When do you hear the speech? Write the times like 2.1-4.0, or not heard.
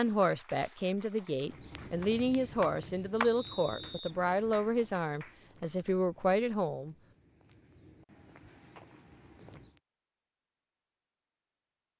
0.0-7.0.